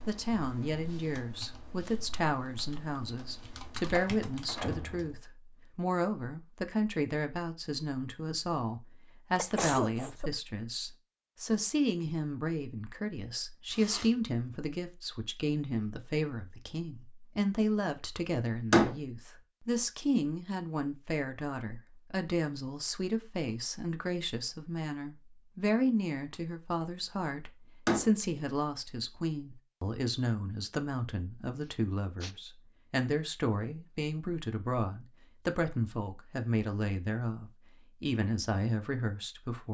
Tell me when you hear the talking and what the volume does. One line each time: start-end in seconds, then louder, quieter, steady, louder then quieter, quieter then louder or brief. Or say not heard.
0.0-39.6 steady.